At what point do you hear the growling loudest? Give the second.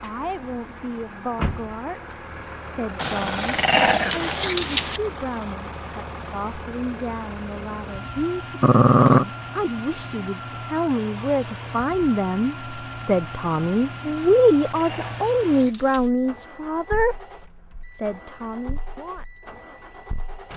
9 s.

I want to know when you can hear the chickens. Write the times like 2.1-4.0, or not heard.
not heard.